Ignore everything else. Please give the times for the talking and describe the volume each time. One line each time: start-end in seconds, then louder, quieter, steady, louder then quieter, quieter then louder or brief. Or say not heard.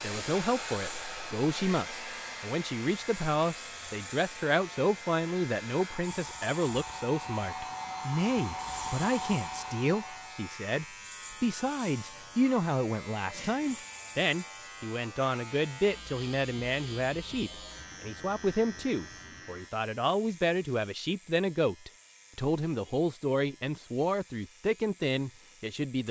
0.0-26.0 steady.